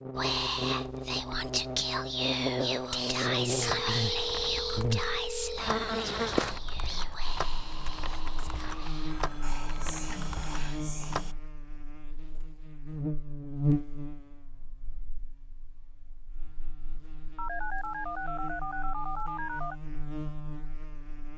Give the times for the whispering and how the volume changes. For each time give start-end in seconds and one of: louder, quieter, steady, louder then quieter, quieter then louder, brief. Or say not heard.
0.1-11.3 quieter.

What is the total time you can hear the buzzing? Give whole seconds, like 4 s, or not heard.
21 s.